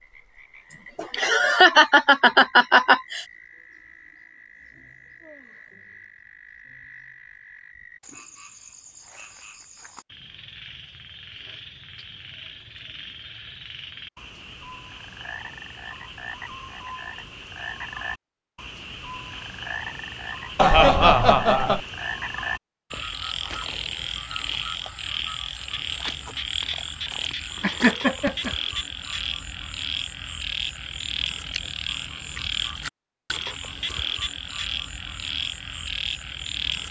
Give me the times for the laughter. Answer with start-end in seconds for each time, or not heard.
0.7-3.2, 20.6-21.8, 27.6-28.5.